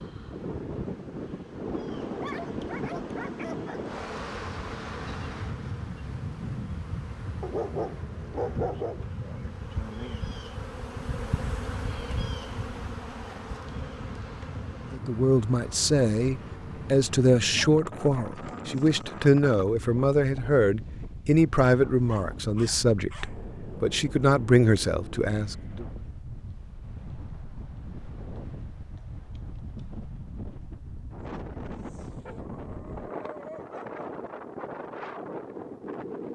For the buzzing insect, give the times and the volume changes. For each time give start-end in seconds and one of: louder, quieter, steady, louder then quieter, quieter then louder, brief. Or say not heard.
0.0-15.0 louder.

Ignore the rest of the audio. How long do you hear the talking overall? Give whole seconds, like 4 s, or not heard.
11 s.